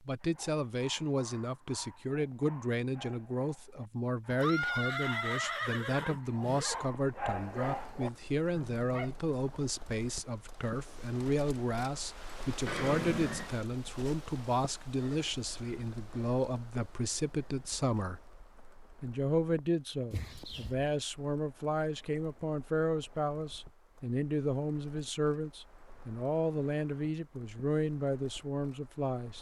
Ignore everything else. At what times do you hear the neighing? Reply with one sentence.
You can hear the neighing from 4.3 to 6.8 s, from 12.7 to 13.5 s and from 20.1 to 20.8 s.